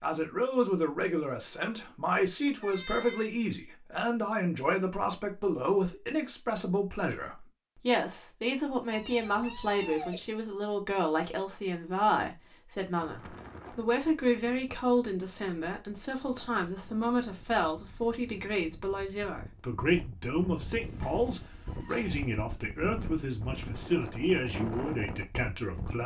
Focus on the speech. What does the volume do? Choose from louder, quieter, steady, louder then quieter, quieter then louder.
steady.